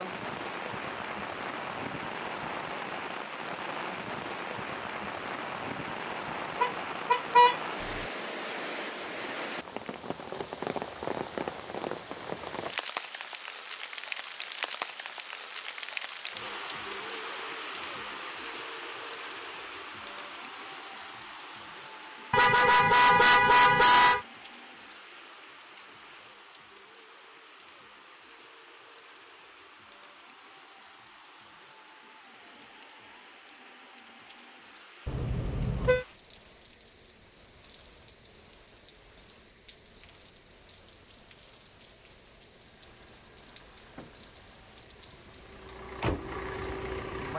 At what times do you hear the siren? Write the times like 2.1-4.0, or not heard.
not heard.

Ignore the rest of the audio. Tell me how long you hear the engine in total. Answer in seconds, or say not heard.
5 s.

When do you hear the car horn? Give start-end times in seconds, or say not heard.
6.6-8.1, 22.3-24.2, 35.0-36.0.